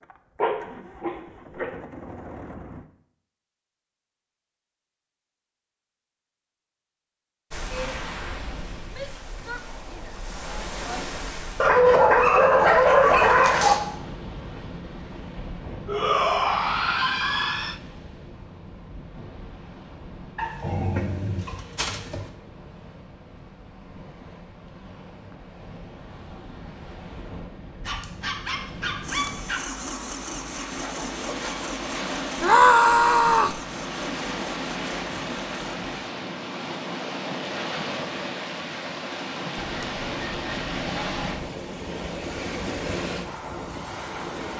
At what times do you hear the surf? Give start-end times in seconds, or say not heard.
7.5-44.5.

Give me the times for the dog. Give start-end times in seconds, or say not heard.
0.4-1.7, 11.6-13.8, 20.4-22.3, 27.9-29.6, 39.6-41.5.